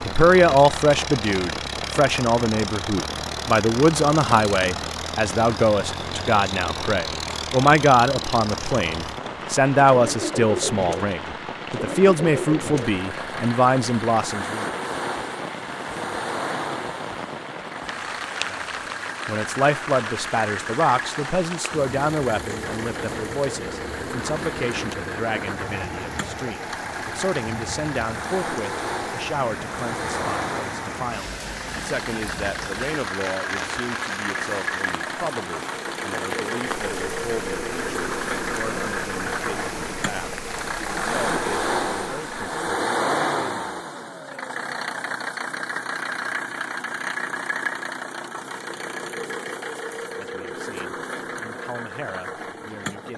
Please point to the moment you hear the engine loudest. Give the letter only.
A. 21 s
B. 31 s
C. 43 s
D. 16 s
C.